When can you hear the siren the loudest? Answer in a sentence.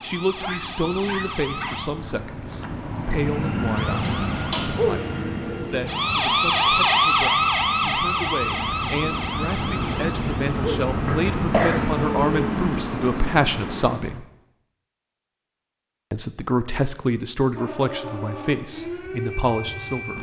The loudest moment of the siren is at 7 seconds.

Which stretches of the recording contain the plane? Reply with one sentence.
The plane can be heard from 0.0 to 14.2 s.